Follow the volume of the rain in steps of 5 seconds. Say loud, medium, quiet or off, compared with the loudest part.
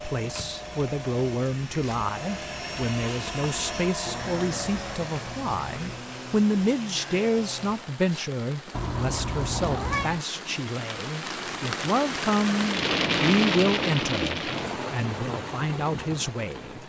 quiet, quiet, loud, medium.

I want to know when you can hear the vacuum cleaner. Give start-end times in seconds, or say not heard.
0.0-7.8.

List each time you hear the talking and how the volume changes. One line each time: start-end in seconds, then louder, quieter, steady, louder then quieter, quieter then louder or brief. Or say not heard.
0.0-16.8 steady.